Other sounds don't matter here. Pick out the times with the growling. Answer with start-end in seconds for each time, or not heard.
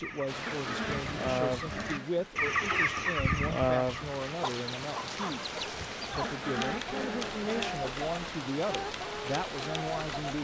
0.5-2.3, 6.2-7.8.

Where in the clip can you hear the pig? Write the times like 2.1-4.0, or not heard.
not heard.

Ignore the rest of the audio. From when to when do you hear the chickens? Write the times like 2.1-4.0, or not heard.
0.0-10.2.